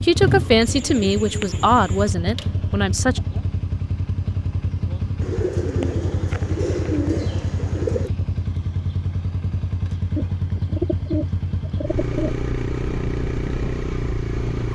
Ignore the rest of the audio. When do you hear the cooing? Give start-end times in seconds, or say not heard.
0.6-2.1, 5.2-8.1, 10.2-12.3.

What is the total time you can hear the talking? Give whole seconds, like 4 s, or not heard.
3 s.